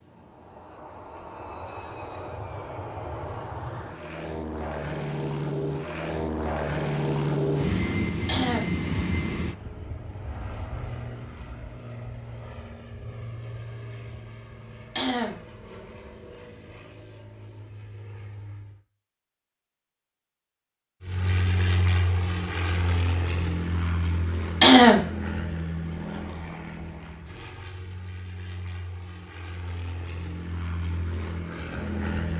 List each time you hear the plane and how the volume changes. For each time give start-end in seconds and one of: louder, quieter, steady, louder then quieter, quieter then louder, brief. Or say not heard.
0.0-18.8 louder then quieter
21.0-32.3 quieter then louder.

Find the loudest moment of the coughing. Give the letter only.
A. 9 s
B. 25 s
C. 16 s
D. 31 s
B.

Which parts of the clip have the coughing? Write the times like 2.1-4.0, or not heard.
8.2-8.7, 14.9-15.3, 24.6-25.1.